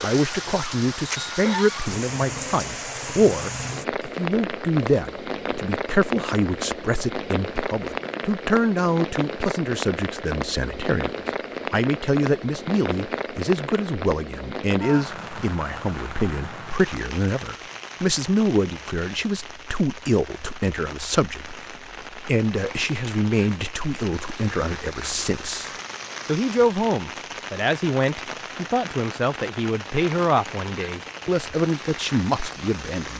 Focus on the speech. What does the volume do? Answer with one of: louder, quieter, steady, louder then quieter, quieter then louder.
steady.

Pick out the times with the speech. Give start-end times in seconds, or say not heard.
0.0-11.1, 11.7-33.1.